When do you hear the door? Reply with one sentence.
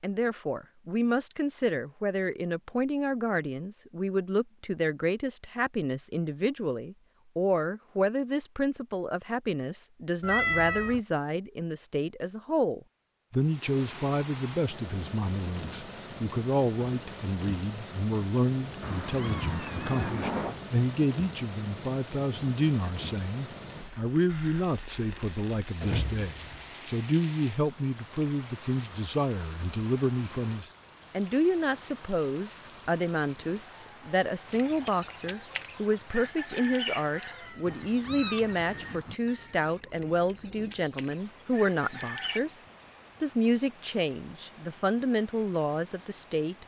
The door can be heard from 25.8 to 26.6 s.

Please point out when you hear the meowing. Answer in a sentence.
You can hear the meowing from 10.2 to 11.0 s, from 18.8 to 20.6 s and from 37.6 to 39.1 s.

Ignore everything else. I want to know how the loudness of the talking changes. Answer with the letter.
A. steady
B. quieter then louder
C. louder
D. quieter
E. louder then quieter
A.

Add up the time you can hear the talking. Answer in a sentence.
The talking can be heard for 46 seconds in total.